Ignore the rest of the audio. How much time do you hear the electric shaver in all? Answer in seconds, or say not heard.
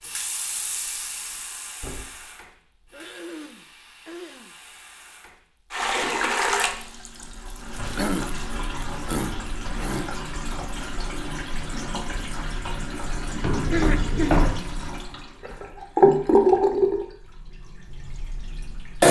not heard.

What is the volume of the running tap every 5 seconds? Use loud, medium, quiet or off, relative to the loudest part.
quiet, medium, quiet, loud.